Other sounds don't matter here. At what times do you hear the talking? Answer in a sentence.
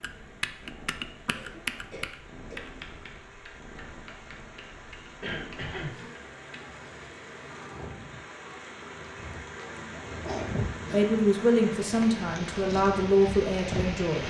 You can hear the talking from 10.9 to 14.2 s.